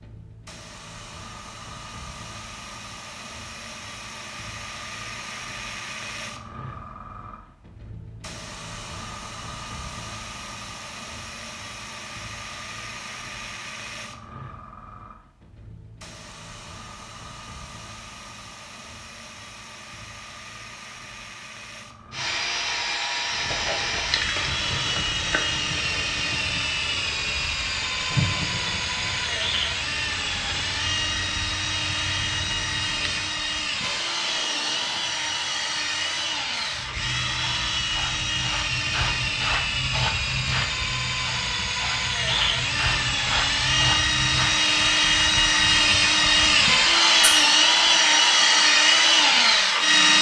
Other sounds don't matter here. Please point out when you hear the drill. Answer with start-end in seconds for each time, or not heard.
22.1-50.1.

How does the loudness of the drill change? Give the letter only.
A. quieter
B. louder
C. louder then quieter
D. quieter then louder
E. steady
B.